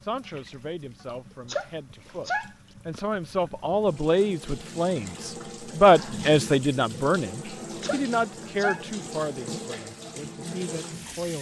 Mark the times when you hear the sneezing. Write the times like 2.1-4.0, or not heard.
1.4-3.0, 7.8-8.8.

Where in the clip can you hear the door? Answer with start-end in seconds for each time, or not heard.
not heard.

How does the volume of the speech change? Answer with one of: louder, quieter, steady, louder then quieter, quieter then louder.
louder then quieter.